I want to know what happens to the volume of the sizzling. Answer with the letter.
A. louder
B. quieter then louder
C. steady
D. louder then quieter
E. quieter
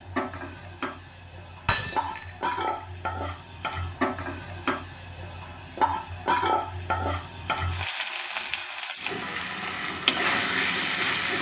A.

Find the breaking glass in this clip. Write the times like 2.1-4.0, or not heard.
1.6-2.7.